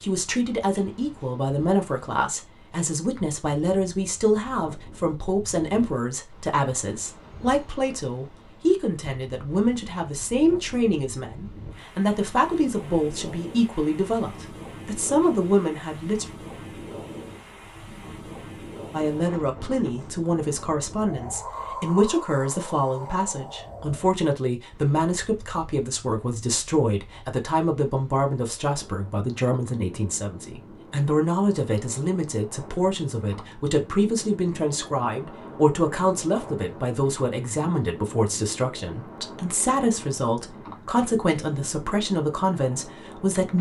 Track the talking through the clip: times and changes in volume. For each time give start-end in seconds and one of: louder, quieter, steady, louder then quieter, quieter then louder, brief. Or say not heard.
0.0-16.2 steady
18.9-43.5 steady.